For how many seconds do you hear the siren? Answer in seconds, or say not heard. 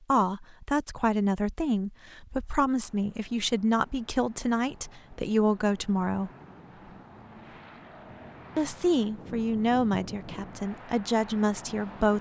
not heard.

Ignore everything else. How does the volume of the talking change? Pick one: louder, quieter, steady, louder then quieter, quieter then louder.
steady.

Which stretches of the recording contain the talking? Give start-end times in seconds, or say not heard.
0.1-6.3, 8.6-12.1.